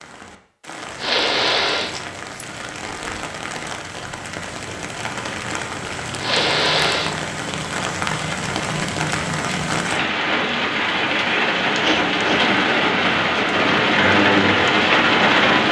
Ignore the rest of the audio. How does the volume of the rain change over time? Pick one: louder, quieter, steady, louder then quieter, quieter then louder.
louder.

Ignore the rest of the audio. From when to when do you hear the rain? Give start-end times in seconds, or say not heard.
0.0-15.6.